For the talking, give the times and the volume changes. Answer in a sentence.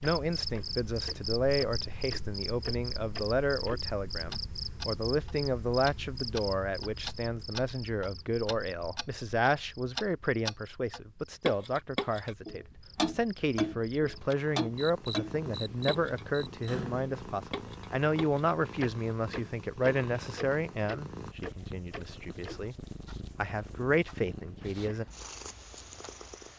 The talking can be heard from 0.0 to 25.1 s, at a steady volume.